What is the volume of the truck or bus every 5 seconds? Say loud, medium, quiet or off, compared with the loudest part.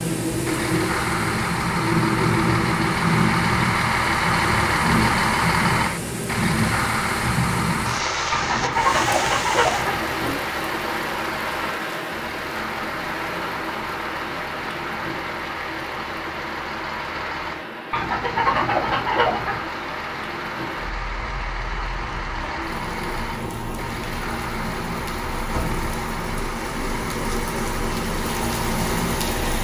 loud, loud, medium, medium, medium, medium.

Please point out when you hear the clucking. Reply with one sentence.
You can hear the clucking from 8.3 to 10.3 s and from 17.9 to 19.7 s.